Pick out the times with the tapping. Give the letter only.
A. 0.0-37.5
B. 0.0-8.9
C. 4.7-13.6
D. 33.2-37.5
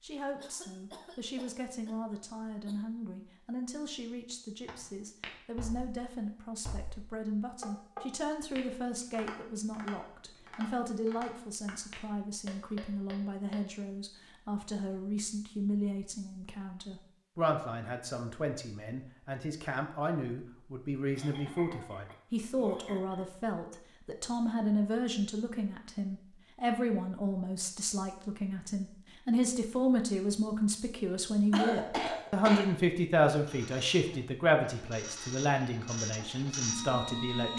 C.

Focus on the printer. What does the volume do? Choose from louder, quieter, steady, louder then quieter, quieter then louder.
louder.